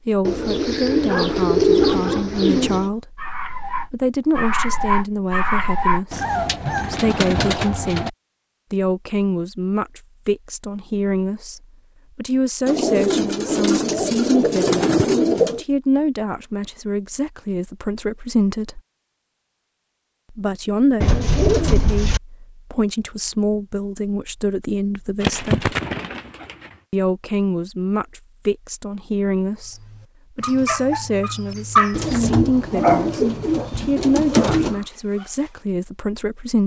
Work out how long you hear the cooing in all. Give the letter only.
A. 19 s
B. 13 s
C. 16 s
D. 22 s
B.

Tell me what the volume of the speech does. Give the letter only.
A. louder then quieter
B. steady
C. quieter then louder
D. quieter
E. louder
B.